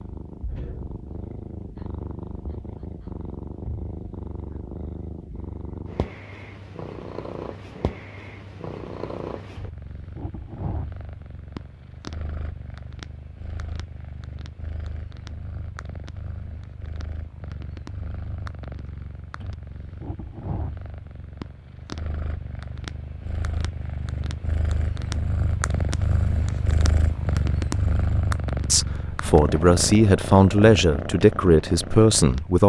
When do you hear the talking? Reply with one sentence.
You can hear the talking from 28.7 to 32.6 s.